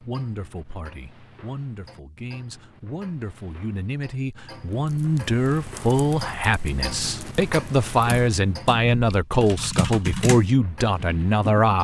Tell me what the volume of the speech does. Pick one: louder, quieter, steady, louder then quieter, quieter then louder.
louder.